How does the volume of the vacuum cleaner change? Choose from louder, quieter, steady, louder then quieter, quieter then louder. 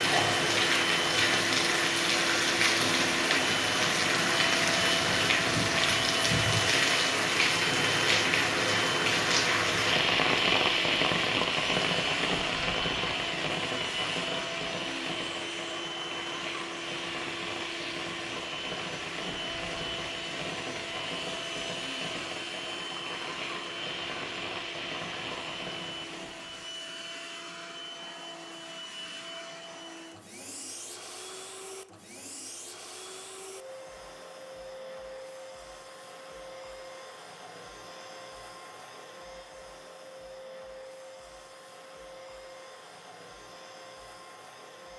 quieter.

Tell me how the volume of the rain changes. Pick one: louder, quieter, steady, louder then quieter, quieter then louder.
quieter.